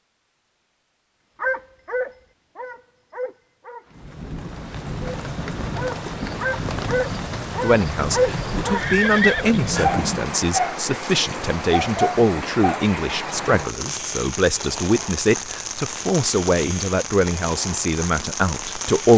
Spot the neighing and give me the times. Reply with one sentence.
The neighing can be heard from 8.6 to 10.1 s.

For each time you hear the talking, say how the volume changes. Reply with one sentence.
You can hear the talking from 7.6 to 19.1 s, at a steady volume.